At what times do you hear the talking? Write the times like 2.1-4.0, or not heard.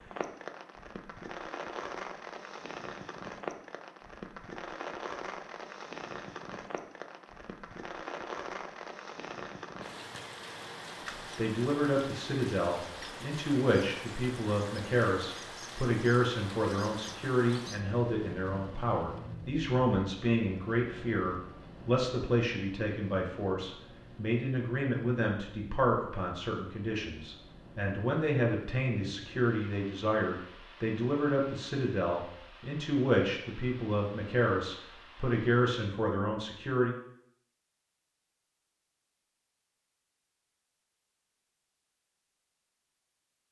11.3-37.0.